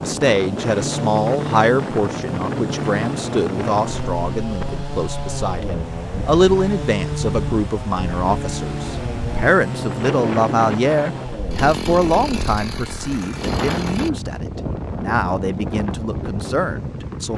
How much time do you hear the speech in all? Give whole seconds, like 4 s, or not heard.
17 s.